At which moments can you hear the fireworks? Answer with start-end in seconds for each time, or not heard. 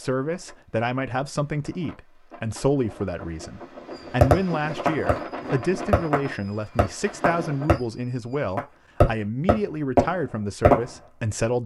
3.9-10.9.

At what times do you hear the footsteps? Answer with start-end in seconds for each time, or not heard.
not heard.